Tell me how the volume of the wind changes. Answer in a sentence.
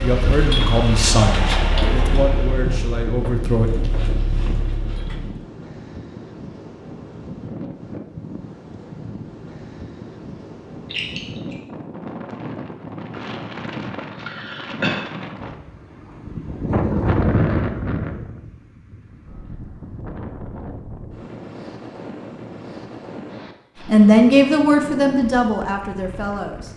The volume of the wind goes up, then down.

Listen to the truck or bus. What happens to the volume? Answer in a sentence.
The loudness of the truck or bus goes down.